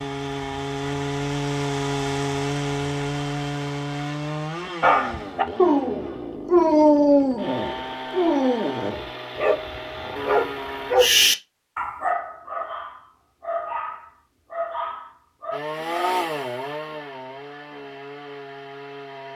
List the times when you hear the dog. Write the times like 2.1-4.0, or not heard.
4.8-16.2.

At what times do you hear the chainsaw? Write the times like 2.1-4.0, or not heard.
0.0-10.9, 15.5-19.3.